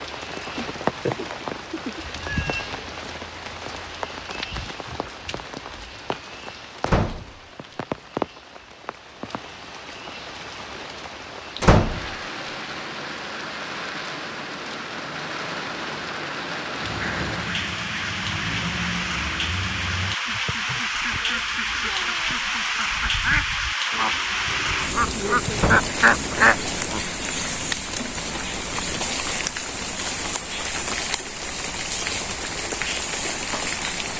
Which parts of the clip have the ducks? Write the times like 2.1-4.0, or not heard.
16.8-27.1.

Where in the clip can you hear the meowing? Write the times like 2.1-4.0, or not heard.
2.2-2.8.